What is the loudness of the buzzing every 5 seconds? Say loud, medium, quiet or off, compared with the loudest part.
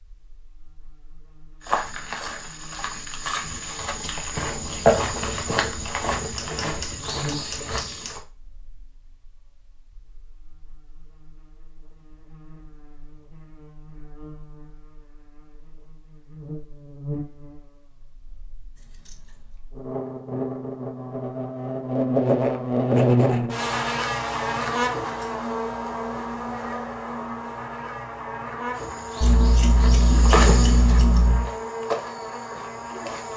quiet, quiet, quiet, quiet, loud, medium, medium.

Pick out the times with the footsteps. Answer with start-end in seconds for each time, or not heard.
1.6-8.2, 28.7-33.3.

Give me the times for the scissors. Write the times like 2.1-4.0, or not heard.
6.3-8.1, 18.8-19.5, 29.2-31.5.